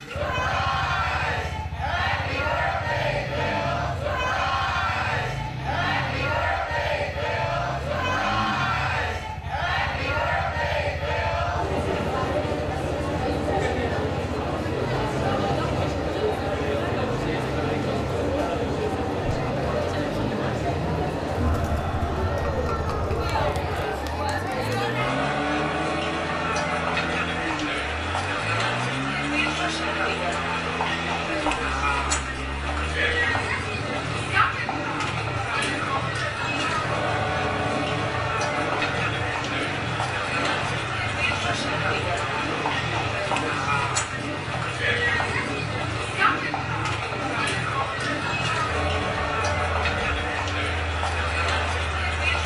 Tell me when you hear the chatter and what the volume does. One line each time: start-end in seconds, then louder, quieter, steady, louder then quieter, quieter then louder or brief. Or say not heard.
0.0-52.4 steady.